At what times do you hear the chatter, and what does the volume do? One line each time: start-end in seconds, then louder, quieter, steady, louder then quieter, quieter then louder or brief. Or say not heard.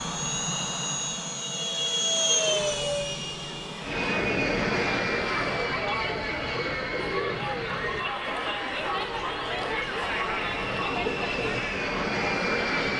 3.9-12.9 steady.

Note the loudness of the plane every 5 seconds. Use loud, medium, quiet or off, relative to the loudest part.
loud, medium, loud.